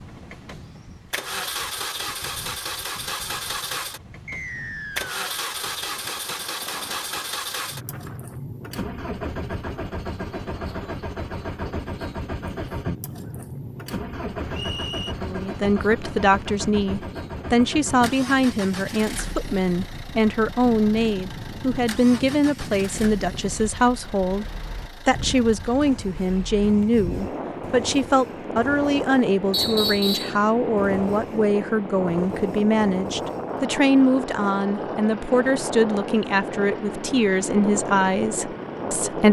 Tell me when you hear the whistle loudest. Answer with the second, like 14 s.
30 s.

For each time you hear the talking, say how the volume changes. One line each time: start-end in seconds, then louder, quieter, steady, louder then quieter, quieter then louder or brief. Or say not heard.
15.2-24.4 steady
25.1-39.2 steady.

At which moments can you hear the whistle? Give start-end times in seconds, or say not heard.
4.2-5.2, 14.5-15.2, 29.5-30.4.